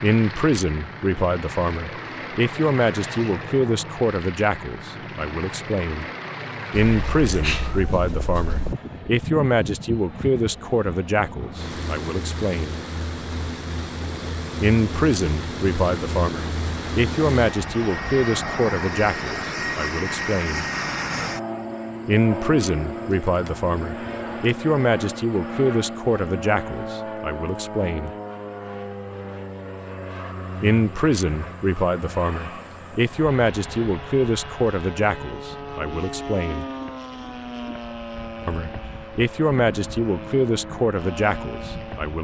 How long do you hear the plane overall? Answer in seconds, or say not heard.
42 s.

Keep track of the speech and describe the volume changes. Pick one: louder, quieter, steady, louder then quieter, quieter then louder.
steady.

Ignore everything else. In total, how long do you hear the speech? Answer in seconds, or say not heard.
34 s.